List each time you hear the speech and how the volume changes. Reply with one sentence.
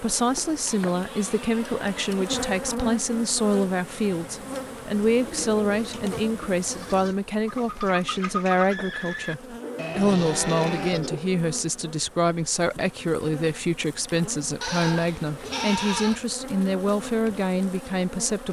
You can hear the speech from 0.0 to 18.4 s, at a steady volume.